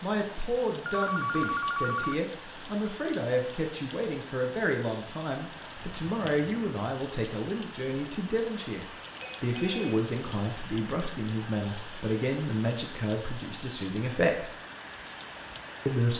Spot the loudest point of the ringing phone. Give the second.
2 s.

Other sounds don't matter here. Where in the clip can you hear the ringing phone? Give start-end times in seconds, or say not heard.
0.8-2.1, 9.2-10.1.